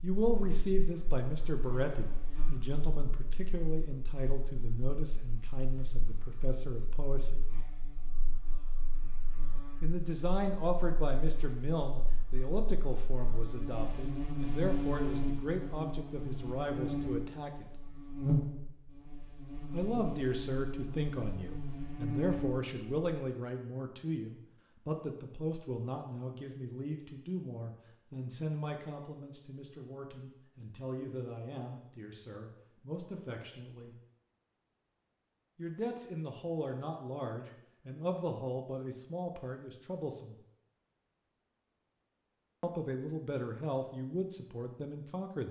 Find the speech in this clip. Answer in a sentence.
The speech can be heard from 0.0 to 7.5 s, from 9.8 to 17.8 s, from 19.7 to 34.0 s, from 35.5 to 40.4 s and from 42.6 to 45.4 s.